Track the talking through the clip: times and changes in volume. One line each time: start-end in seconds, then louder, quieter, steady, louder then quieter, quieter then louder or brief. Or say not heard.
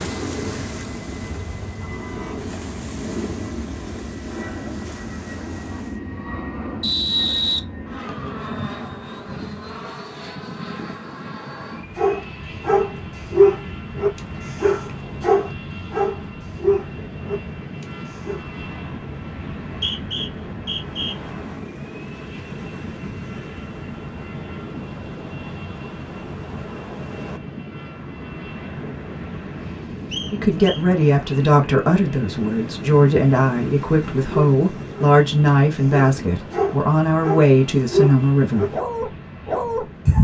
30.3-38.8 steady.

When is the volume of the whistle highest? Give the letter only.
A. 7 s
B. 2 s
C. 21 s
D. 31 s
A.